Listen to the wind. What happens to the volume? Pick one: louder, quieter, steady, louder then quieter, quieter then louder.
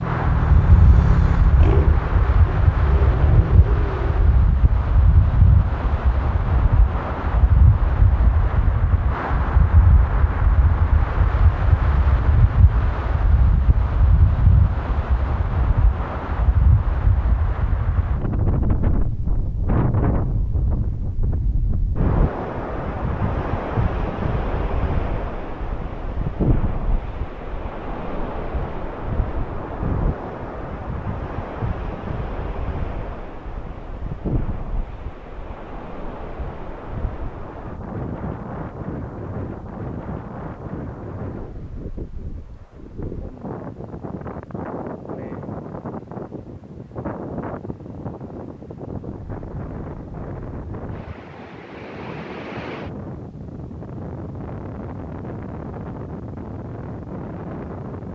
quieter.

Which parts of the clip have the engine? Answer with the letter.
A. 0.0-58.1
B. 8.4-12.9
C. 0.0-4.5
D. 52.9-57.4
C.